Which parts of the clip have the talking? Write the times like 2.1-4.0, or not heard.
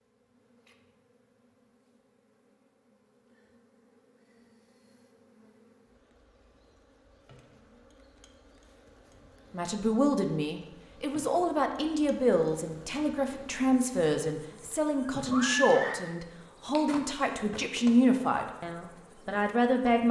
9.5-20.0.